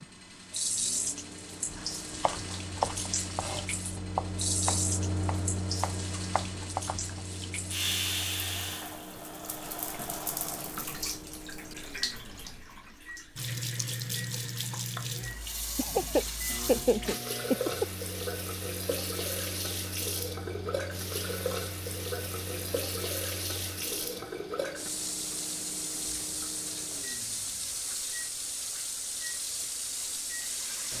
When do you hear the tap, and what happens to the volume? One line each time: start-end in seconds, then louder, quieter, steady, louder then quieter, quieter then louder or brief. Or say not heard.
0.0-30.9 steady.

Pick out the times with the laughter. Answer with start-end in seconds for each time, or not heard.
15.8-17.9.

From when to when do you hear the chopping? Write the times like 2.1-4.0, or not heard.
1.7-7.2.